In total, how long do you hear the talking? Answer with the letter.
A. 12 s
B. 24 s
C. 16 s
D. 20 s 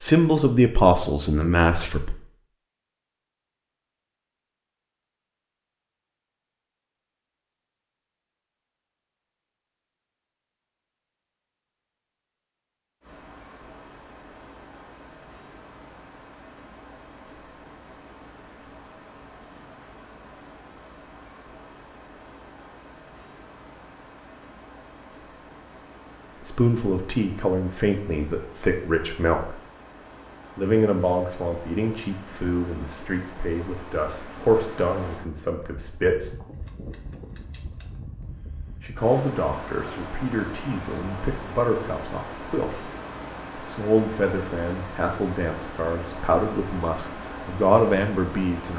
D.